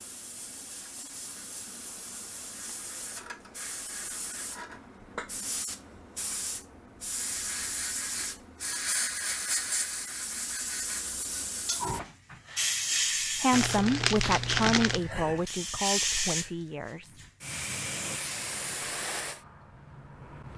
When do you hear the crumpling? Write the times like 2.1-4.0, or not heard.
13.5-15.1.